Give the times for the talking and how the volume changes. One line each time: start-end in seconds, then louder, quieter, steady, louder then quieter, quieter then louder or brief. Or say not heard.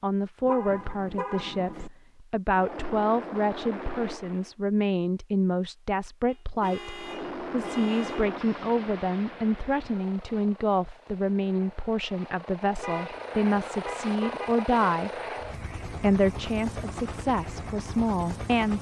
0.0-15.2 steady
15.9-18.7 brief.